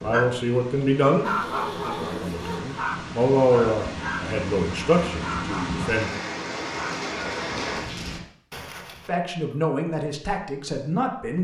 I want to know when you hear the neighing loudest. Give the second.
2 s.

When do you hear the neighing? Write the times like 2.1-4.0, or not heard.
1.2-2.8, 8.5-9.6.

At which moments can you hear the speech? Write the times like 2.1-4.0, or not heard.
0.0-6.1, 9.1-11.3.